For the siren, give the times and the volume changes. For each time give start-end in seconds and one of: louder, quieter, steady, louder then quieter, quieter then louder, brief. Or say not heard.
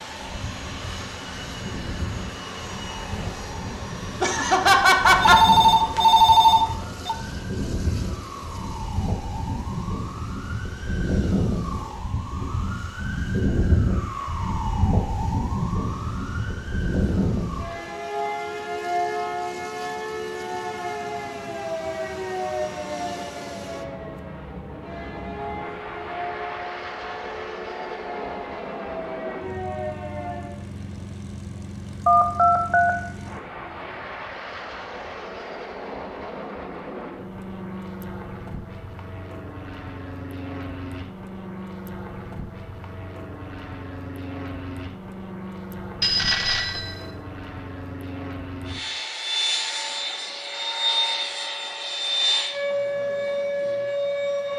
0.1-30.6 louder then quieter
49.6-54.5 louder.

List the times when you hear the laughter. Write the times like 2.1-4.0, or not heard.
4.2-5.4.